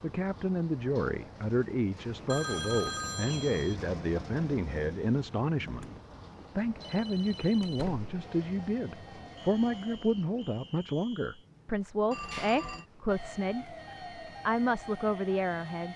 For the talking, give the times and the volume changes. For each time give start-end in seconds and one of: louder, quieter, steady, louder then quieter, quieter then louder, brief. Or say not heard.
0.0-5.8 steady
6.5-13.8 steady
14.4-15.9 brief.